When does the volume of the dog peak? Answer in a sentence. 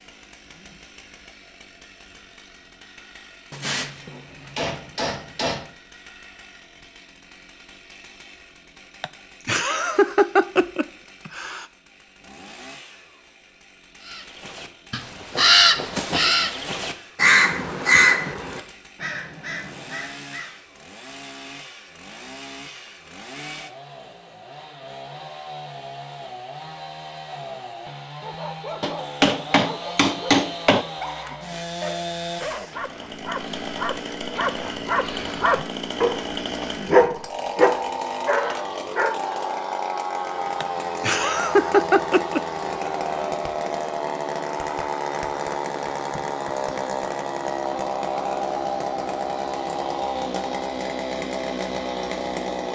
The loudest moment of the dog is at 37 seconds.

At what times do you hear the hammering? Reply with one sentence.
You can hear the hammering from 3.5 to 5.7 s and from 28.8 to 30.9 s.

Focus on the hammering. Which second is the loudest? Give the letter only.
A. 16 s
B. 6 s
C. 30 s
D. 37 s
C.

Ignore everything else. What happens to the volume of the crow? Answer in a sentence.
The volume of the crow goes down.